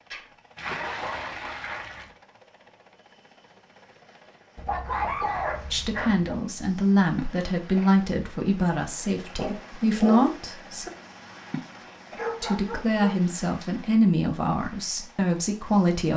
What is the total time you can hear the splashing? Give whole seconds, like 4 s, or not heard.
3 s.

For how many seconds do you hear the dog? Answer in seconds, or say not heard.
6 s.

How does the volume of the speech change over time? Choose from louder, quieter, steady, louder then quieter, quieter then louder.
steady.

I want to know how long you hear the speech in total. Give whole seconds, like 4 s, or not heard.
9 s.